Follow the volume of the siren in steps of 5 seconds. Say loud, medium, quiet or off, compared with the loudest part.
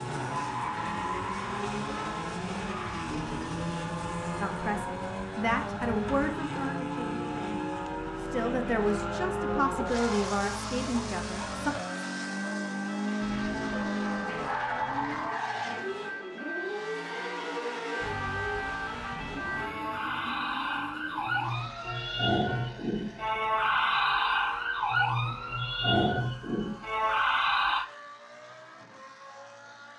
quiet, quiet, quiet, medium, loud, loud.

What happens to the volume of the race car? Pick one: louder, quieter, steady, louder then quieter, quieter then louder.
quieter.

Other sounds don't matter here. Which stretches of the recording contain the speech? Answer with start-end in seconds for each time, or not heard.
4.4-11.8.